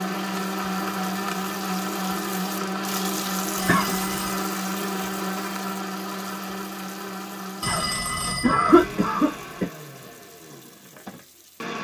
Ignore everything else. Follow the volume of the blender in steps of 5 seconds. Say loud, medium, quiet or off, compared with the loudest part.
loud, medium, medium.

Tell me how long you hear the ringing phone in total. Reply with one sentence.
You can hear the ringing phone for 2 seconds altogether.